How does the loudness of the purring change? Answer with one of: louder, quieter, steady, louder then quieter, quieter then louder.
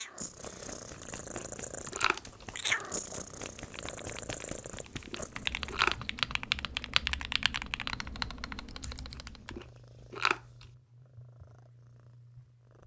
quieter.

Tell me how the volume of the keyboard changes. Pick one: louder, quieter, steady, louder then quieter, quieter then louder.
louder then quieter.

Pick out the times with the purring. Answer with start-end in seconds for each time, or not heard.
0.0-12.8.